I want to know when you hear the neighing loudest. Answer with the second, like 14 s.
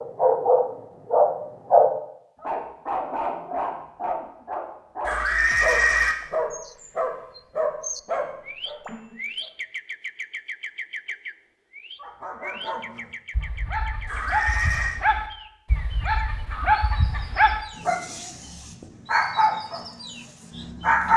6 s.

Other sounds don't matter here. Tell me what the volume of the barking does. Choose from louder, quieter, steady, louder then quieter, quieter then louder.
quieter then louder.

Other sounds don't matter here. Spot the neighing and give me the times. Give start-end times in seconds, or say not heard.
5.0-6.2, 14.1-15.0.